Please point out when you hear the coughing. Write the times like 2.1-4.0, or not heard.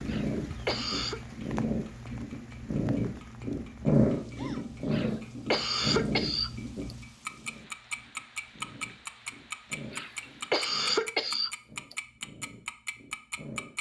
0.1-1.2, 4.9-7.0, 9.9-11.9.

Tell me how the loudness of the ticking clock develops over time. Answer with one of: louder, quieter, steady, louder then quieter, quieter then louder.
louder.